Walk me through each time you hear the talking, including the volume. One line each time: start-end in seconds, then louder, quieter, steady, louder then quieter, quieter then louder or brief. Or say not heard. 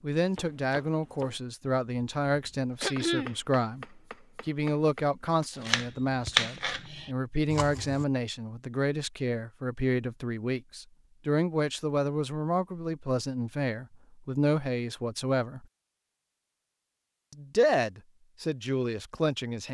0.0-15.7 steady
17.3-19.6 brief.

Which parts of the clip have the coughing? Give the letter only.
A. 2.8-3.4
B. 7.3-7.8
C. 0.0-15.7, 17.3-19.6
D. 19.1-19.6
A.